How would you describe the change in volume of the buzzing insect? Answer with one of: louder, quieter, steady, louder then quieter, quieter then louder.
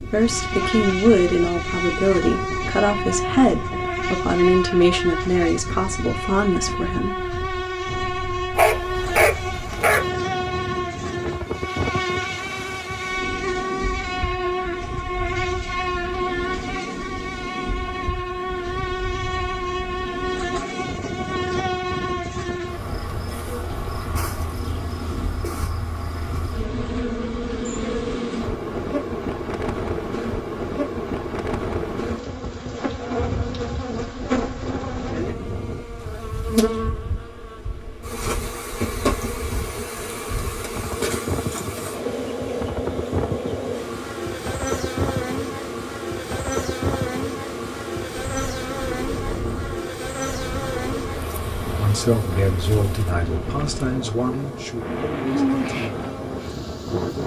steady.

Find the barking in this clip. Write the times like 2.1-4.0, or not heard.
8.6-10.1.